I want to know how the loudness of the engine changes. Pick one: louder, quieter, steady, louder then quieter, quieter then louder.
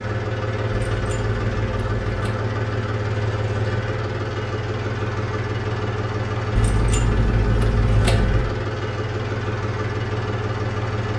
steady.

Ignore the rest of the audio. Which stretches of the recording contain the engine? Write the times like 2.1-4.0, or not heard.
0.0-11.1.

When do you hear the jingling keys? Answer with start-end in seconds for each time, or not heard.
0.9-2.4, 6.5-8.6.